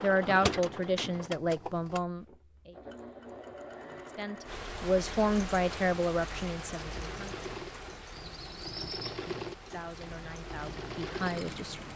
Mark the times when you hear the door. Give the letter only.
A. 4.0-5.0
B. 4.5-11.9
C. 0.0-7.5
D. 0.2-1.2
D.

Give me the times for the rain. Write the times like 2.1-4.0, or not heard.
4.5-11.9.